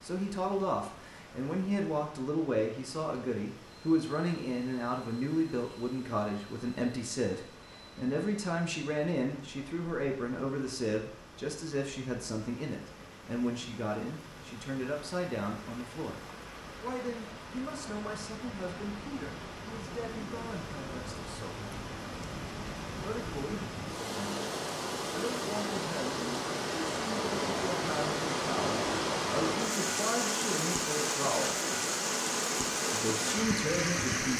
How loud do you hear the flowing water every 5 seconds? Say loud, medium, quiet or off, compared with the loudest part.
quiet, quiet, quiet, quiet, medium, loud, loud.